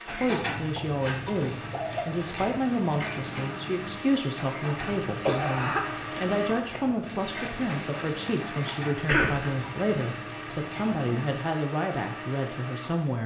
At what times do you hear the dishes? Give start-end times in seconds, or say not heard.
0.1-11.3.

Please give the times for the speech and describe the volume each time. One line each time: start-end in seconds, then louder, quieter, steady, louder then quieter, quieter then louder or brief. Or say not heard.
0.0-13.2 steady.